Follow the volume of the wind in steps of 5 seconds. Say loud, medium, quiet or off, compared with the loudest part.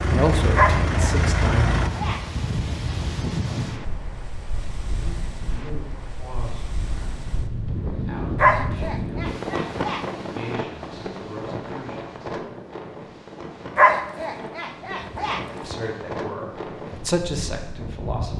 loud, loud, medium, medium.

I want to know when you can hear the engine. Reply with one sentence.
You can hear the engine from 0.0 to 1.9 s.